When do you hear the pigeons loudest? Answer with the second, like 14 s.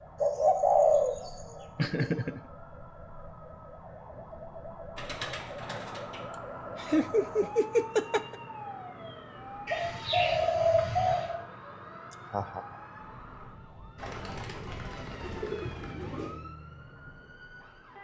1 s.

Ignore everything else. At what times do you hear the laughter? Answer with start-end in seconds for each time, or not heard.
1.8-2.4, 6.3-8.3, 12.3-12.8.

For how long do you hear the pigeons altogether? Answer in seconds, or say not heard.
7 s.